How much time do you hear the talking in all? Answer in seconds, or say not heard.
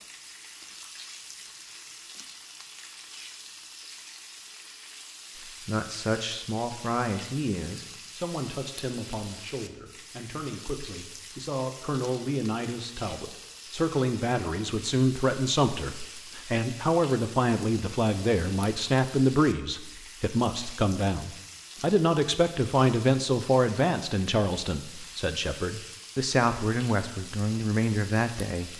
23 s.